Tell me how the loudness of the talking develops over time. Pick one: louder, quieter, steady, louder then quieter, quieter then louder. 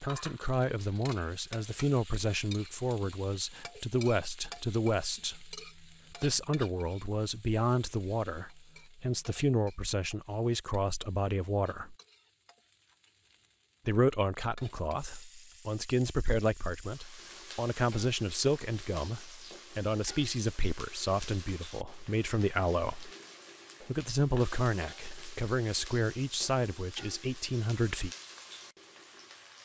steady.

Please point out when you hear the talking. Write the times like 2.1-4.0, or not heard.
0.0-11.9, 13.8-23.1, 23.9-28.1.